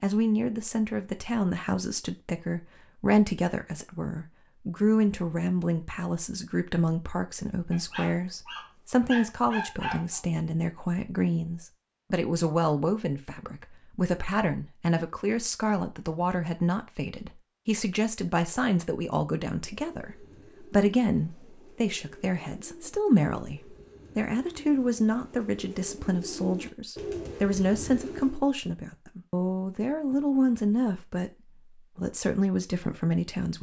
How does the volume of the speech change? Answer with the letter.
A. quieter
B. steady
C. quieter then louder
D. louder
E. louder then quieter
B.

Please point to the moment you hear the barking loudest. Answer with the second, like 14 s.
10 s.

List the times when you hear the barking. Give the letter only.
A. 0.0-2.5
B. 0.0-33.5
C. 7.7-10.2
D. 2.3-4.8
C.